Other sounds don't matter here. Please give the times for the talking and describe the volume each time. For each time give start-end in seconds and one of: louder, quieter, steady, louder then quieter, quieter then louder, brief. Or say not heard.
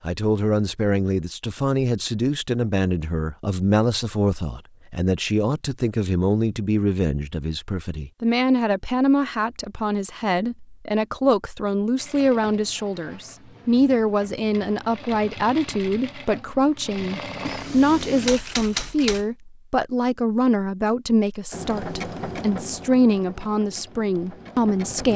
0.1-25.1 steady.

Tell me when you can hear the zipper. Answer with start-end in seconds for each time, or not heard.
not heard.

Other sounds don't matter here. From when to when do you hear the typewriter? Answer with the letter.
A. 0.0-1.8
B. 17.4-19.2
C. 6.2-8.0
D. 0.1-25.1
B.